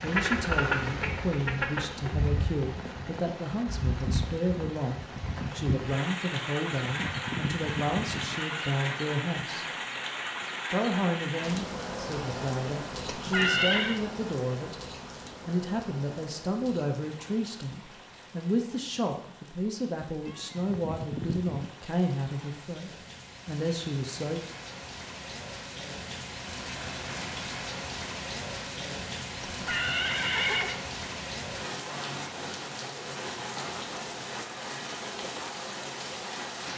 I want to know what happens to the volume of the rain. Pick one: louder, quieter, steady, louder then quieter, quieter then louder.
quieter then louder.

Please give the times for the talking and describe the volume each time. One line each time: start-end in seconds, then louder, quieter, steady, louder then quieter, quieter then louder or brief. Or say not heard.
0.0-9.7 steady
10.7-14.8 quieter then louder
15.4-24.4 steady.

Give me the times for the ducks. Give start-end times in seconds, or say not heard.
0.0-2.1.